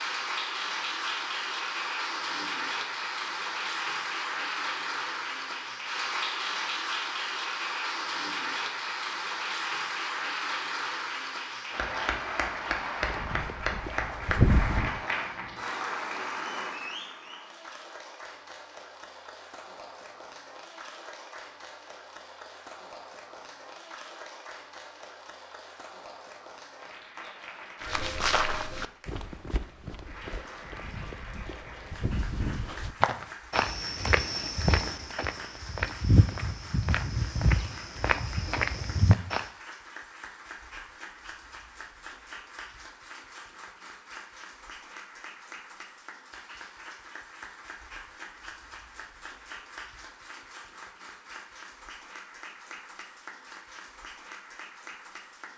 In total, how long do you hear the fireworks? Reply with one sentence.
You can't hear the fireworks here.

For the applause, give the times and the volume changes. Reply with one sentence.
The applause can be heard from 0.0 to 55.5 s, getting quieter.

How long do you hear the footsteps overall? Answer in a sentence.
You can hear the footsteps for 14 seconds altogether.